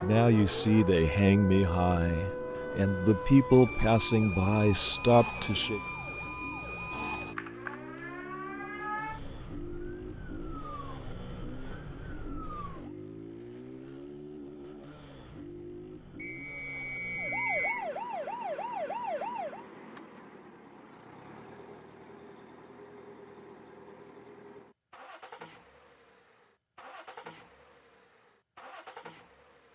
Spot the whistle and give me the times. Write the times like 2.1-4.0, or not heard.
16.1-17.9.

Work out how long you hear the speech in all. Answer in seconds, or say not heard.
6 s.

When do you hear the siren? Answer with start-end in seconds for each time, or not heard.
0.0-12.9, 17.1-19.6.